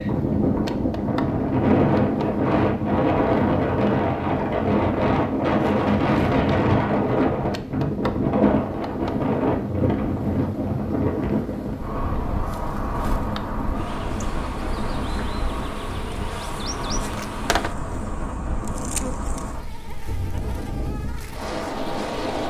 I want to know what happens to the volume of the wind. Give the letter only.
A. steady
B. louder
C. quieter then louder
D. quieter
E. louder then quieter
D.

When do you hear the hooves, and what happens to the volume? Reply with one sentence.
You can't hear the hooves here.